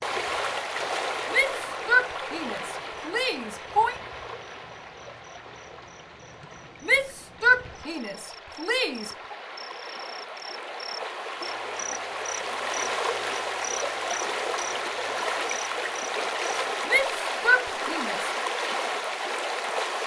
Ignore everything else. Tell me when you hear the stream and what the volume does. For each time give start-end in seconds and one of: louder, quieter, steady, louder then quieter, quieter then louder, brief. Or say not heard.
0.0-20.0 quieter then louder.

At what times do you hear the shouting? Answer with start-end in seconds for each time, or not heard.
1.3-4.0, 6.8-9.3, 16.9-18.3.